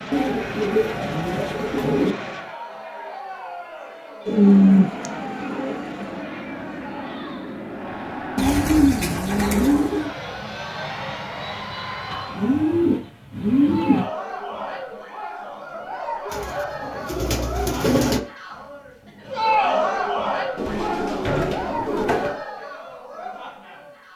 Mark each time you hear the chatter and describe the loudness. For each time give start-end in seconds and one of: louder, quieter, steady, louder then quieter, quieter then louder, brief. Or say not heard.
0.1-24.1 louder.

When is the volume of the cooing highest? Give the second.
5 s.